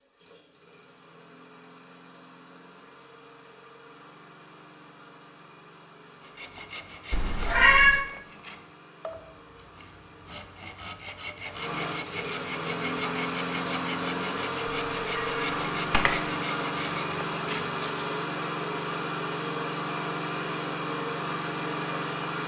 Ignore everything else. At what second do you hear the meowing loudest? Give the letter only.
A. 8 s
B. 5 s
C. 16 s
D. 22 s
A.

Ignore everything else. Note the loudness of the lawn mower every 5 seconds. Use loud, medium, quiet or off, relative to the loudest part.
quiet, quiet, loud, loud, loud.